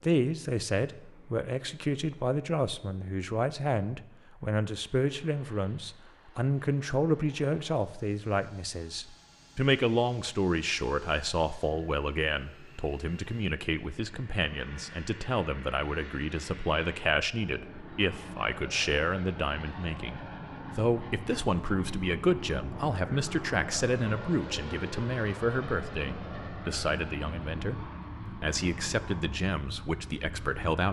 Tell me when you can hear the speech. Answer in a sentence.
The speech can be heard from 0.0 to 30.8 s.